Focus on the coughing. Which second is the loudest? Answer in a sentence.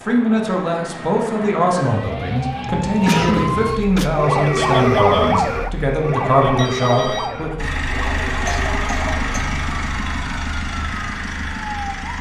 The loudest moment of the coughing is at 3 seconds.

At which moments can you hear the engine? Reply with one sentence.
You can hear the engine from 7.5 to 12.1 s.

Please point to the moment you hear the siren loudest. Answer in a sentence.
The loudest moment of the siren is at 5 seconds.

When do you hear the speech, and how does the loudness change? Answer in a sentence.
The speech can be heard from 0.1 to 7.7 s, at a steady volume.